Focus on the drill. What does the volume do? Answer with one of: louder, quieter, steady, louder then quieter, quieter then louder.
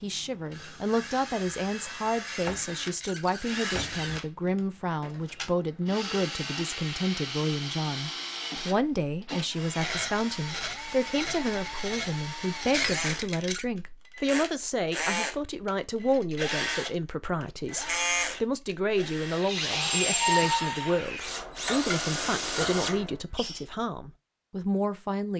louder.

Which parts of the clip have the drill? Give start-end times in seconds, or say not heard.
0.0-23.6.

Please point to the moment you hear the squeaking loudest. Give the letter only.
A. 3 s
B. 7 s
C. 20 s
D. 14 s
C.